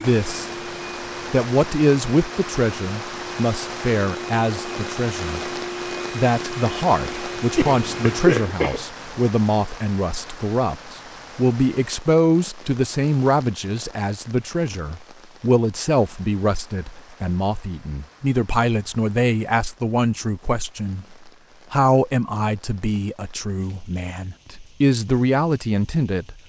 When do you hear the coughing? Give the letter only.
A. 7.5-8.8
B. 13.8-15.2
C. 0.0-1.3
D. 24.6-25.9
A.